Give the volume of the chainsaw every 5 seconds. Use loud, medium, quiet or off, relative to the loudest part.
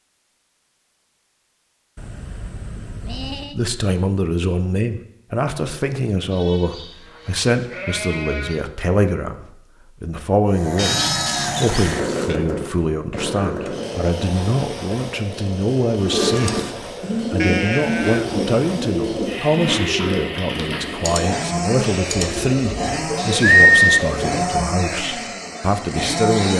off, off, loud, medium, loud, loud.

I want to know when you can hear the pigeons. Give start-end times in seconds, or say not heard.
15.9-24.6.